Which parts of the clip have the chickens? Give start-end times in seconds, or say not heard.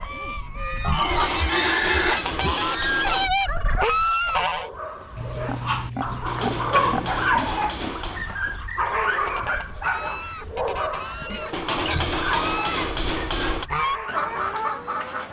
0.0-4.7, 9.1-15.2.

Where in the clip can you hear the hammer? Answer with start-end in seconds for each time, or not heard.
1.0-3.3, 6.2-8.2, 11.5-13.7.